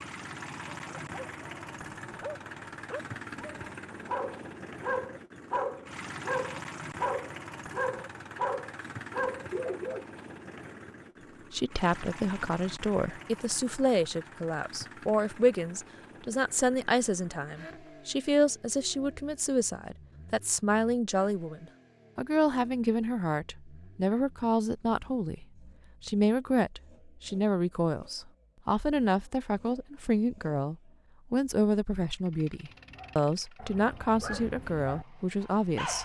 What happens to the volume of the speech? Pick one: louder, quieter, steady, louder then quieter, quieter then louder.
steady.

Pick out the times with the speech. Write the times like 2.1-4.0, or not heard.
11.5-35.9.